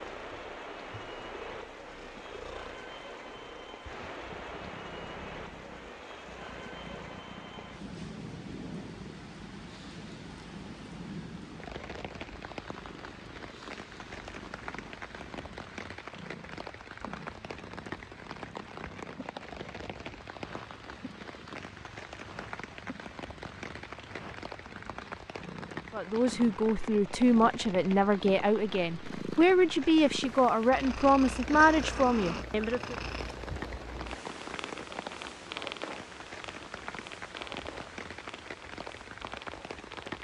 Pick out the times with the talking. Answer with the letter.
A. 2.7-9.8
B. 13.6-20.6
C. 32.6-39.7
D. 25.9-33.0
D.